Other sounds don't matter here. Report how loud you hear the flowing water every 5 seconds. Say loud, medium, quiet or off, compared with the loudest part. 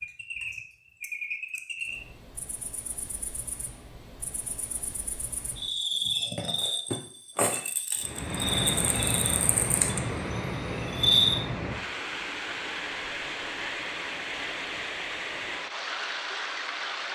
off, loud, loud, loud.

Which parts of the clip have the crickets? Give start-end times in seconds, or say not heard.
0.0-11.4.